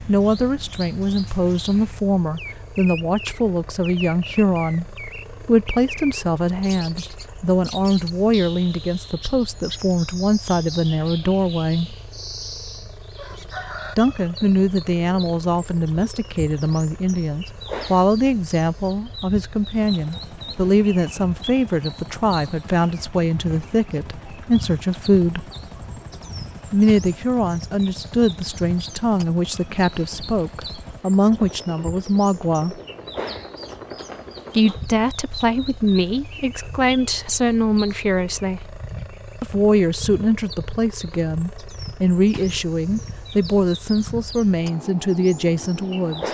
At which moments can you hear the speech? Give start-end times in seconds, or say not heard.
0.1-11.9, 13.9-25.4, 26.7-32.8, 34.5-38.8, 39.4-46.2.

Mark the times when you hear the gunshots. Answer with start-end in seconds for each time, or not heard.
not heard.